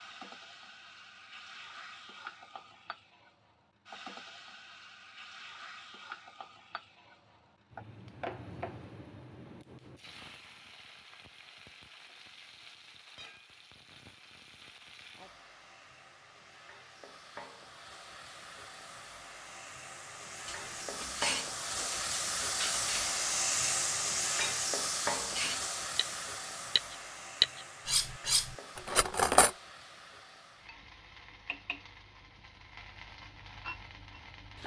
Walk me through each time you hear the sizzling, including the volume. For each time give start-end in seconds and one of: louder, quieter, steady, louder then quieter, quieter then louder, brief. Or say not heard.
0.0-34.6 louder then quieter.